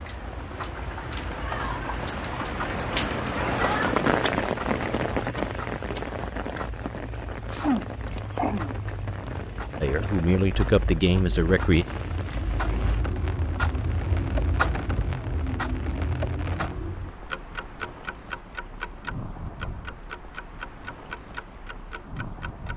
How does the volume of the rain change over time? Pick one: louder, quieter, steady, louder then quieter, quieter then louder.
quieter.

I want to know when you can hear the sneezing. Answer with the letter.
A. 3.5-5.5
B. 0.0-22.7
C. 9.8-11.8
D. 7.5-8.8
D.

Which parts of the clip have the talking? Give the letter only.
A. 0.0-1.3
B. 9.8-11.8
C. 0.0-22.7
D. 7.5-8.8
B.